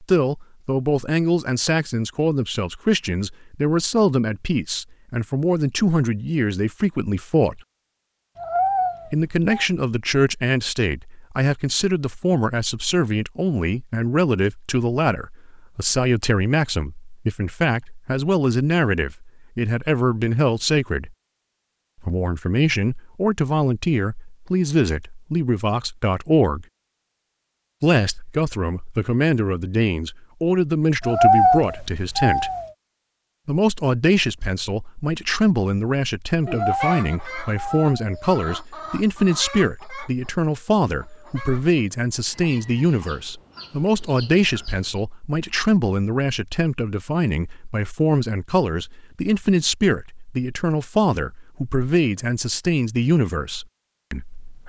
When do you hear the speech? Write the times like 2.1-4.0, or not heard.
0.0-7.6, 9.1-21.1, 22.0-26.6, 27.8-32.5, 33.5-54.6.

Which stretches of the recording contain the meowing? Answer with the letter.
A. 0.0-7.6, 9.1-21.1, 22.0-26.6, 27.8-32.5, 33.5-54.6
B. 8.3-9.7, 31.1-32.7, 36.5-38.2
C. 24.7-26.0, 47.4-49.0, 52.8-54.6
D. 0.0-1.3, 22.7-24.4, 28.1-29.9
B.